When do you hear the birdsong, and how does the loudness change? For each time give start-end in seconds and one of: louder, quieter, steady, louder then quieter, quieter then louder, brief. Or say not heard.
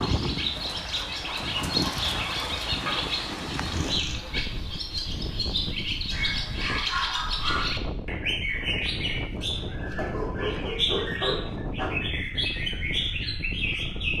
0.0-14.1 steady.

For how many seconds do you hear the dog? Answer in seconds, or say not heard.
6 s.